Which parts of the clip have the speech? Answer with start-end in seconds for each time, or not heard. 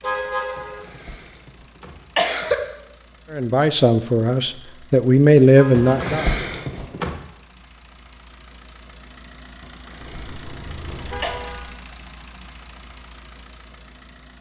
3.3-6.2.